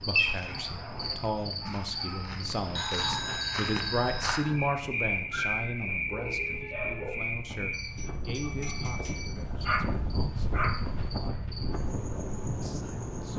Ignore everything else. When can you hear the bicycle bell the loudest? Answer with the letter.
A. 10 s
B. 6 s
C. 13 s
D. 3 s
D.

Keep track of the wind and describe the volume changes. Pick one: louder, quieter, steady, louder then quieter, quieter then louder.
louder.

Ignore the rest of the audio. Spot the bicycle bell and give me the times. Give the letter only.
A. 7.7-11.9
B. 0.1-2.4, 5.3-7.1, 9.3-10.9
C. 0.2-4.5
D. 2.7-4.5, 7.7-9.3
D.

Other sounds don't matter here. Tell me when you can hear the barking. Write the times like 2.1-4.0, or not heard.
0.1-2.4, 5.3-7.1, 9.3-10.9.